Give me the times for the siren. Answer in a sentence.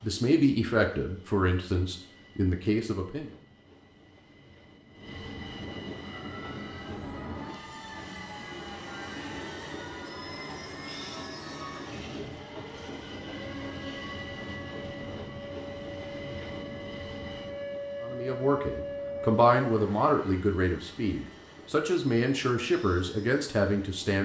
The siren can be heard from 6.0 to 20.4 s.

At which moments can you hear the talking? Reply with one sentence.
You can hear the talking from 0.0 to 3.3 s and from 18.0 to 24.2 s.